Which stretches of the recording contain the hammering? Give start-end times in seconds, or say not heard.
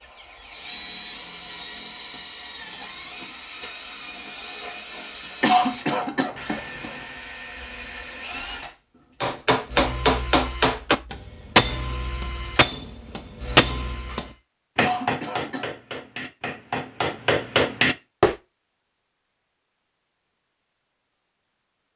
9.2-18.4.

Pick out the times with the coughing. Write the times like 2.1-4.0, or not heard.
5.4-7.0, 14.8-15.7.